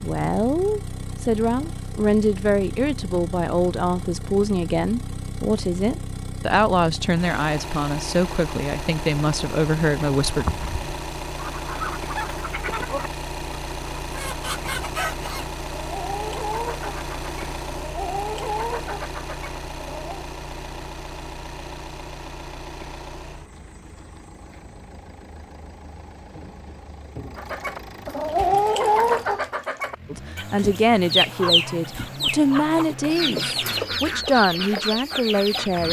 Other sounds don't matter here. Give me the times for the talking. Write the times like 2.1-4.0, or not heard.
0.0-10.4, 30.1-35.8.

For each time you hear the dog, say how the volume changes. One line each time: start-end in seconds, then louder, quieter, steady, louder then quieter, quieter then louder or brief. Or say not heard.
not heard.